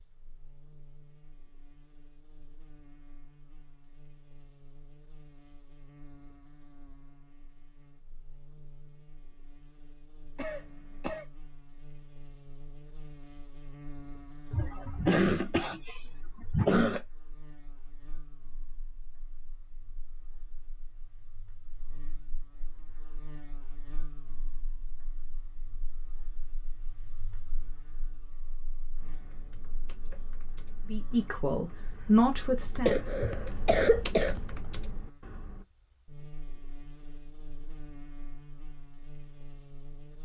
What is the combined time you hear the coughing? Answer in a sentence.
The coughing can be heard for 5 seconds in total.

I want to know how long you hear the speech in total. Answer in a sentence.
You can hear the speech for 2 seconds altogether.